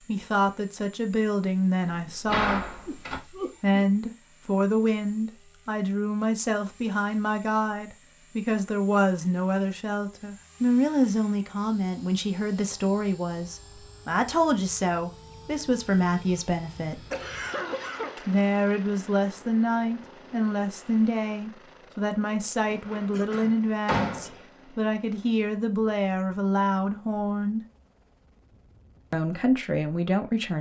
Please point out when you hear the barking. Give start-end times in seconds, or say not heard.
not heard.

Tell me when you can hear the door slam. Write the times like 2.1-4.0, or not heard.
1.9-3.2, 22.7-24.4.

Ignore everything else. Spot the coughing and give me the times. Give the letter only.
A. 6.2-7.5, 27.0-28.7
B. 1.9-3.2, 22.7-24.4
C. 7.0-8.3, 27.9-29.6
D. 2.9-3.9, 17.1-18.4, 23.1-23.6
D.